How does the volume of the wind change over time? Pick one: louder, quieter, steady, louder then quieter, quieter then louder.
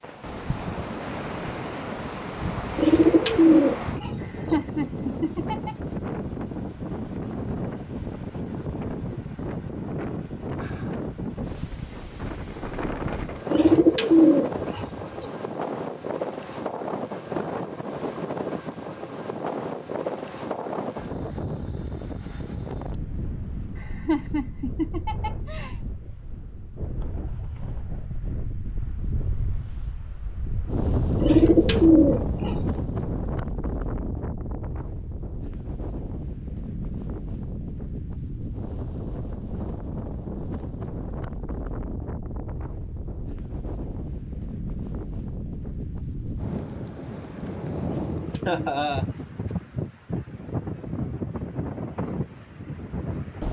steady.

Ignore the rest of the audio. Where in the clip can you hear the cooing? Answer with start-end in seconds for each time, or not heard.
2.8-4.5, 13.5-15.2, 31.2-32.6, 47.9-49.2.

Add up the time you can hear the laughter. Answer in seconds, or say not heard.
4 s.